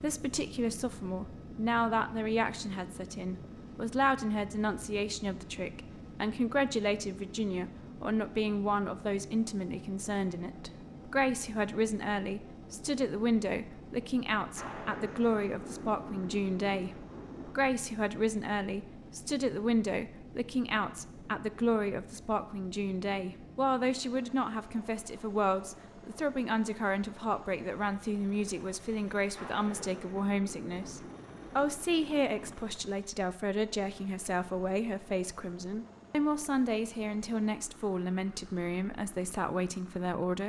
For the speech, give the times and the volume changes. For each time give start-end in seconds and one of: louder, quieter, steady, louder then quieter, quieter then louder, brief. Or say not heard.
0.0-40.4 steady.